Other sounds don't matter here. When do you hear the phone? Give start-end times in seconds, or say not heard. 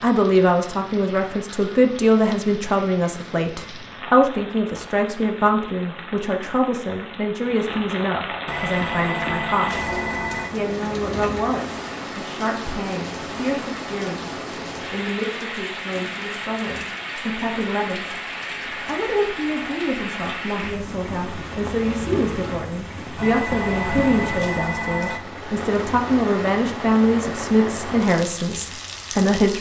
8.4-10.5, 23.1-25.2.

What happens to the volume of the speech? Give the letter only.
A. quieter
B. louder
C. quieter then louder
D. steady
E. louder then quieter
C.